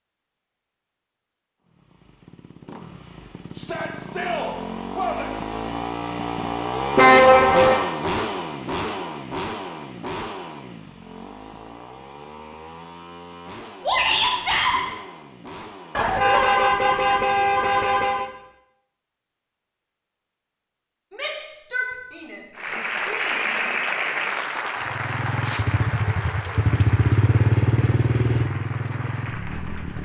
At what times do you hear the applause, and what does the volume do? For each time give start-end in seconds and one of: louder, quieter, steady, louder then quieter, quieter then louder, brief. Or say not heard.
22.6-30.0 quieter.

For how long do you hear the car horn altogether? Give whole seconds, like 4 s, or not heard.
3 s.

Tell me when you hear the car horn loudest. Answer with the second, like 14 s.
7 s.